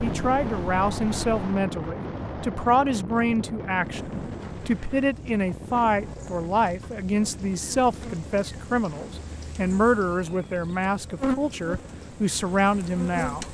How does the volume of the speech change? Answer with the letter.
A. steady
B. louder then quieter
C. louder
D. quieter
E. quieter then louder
A.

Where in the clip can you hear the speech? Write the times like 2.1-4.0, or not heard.
0.0-13.4.